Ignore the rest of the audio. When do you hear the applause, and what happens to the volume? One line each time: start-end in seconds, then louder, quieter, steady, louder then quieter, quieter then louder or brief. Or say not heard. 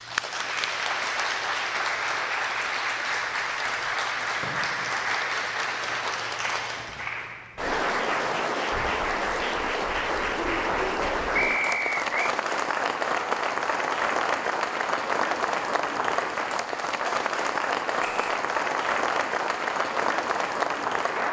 0.0-21.2 steady.